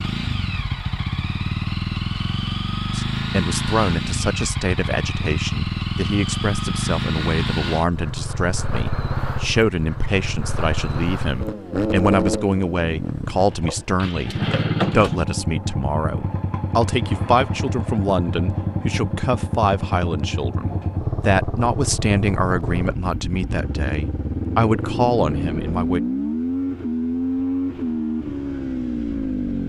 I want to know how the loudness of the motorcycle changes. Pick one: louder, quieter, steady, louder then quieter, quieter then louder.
steady.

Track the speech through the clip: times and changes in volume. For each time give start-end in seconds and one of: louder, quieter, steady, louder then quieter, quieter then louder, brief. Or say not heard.
3.0-26.0 steady.